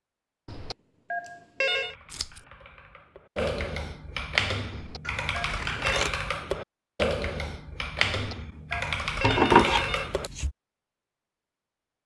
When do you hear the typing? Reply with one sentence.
The typing can be heard from 1.6 to 10.6 s.